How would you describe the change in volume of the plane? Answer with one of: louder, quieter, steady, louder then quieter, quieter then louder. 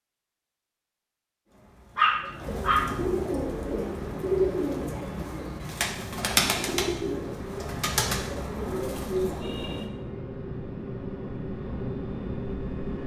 louder.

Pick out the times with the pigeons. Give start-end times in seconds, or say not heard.
1.4-9.9.